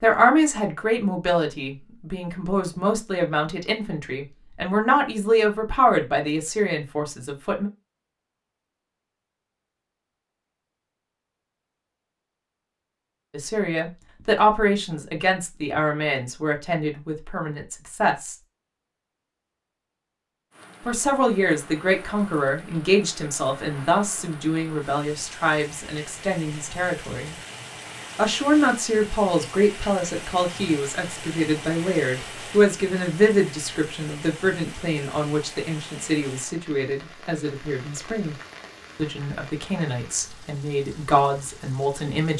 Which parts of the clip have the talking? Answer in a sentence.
You can hear the talking from 0.0 to 7.7 s, from 13.3 to 18.4 s, from 20.9 to 27.4 s, from 28.1 to 38.4 s and from 39.0 to 42.3 s.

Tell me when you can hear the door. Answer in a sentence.
You can't hear the door here.